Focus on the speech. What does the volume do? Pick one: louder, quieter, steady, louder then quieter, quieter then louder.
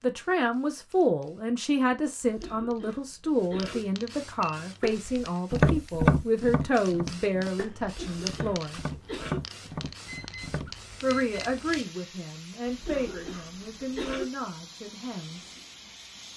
quieter.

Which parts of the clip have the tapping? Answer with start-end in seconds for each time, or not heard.
4.6-10.8.